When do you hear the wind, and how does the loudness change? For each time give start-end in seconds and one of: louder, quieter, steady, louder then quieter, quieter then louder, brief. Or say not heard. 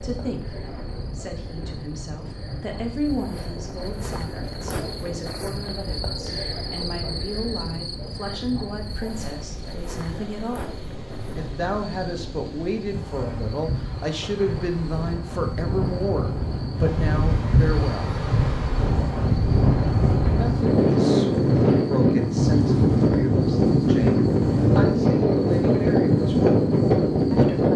0.0-27.7 louder.